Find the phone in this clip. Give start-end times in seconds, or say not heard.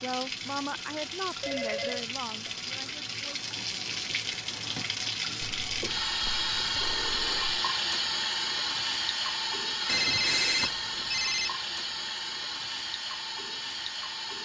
1.4-2.5, 5.4-7.5, 9.8-11.5.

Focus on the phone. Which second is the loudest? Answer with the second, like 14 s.
10 s.